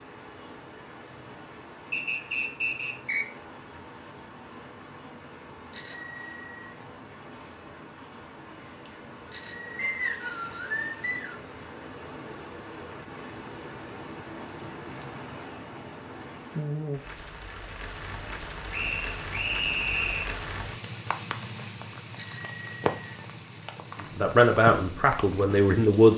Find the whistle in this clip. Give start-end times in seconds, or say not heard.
1.9-3.2, 9.8-11.3, 18.7-20.4.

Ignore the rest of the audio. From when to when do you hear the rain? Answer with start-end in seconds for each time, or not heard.
0.0-26.1.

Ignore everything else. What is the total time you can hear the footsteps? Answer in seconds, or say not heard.
not heard.